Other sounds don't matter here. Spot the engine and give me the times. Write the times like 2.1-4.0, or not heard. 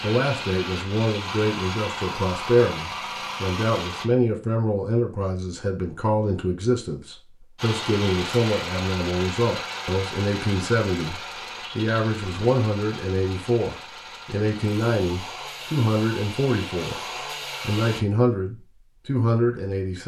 0.0-4.0, 7.5-18.0.